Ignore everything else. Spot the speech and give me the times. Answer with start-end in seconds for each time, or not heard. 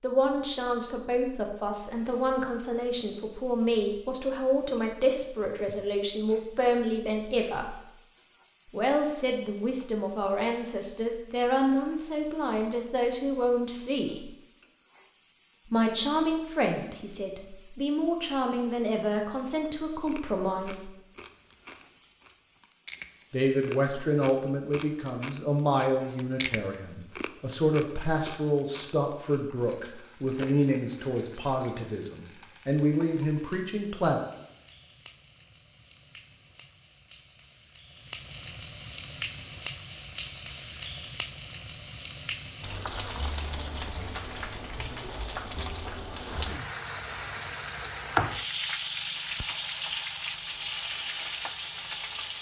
0.0-7.8, 8.7-14.3, 15.7-20.9, 23.3-34.2.